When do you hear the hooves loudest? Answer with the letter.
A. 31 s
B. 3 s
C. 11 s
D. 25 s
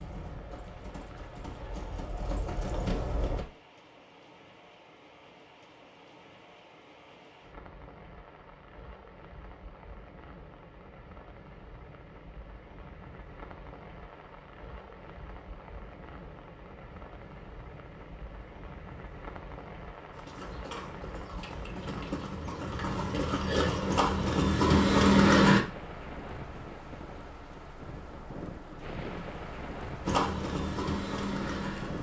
D.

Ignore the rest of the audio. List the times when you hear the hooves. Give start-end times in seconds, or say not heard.
0.0-3.5, 20.1-25.6, 30.1-31.9.